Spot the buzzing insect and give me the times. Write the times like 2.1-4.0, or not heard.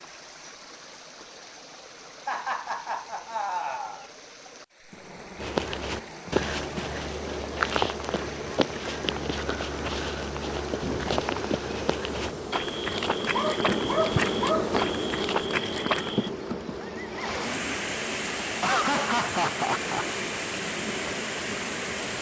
4.9-22.1.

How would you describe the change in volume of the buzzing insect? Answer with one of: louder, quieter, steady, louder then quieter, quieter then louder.
louder then quieter.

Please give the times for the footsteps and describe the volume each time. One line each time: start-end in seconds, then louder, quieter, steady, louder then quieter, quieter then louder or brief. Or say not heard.
5.3-16.3 steady.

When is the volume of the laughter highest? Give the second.
19 s.